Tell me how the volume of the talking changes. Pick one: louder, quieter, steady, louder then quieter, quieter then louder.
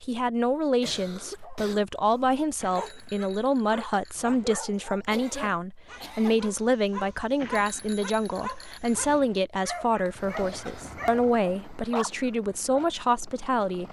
steady.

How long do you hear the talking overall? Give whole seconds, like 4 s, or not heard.
14 s.